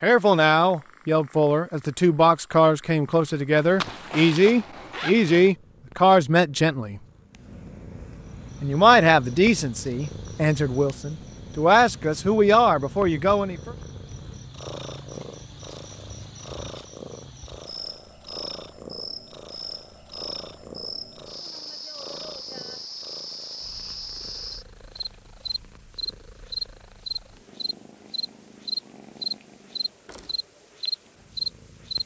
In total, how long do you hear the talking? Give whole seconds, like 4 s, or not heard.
12 s.